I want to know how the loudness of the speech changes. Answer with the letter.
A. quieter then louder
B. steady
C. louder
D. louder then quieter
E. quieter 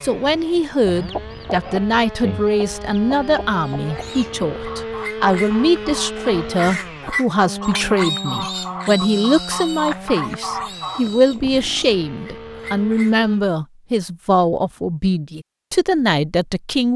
B.